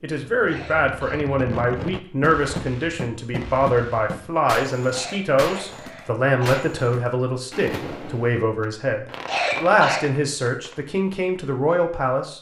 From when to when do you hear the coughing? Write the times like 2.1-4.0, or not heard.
0.5-1.4, 4.9-6.7, 9.2-10.1.